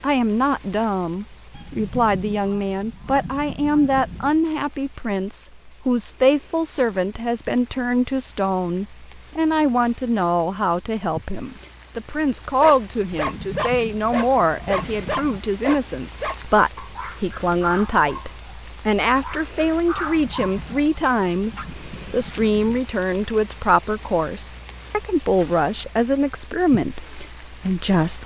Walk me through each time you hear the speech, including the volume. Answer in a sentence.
The speech can be heard from 0.0 to 28.2 s, at a steady volume.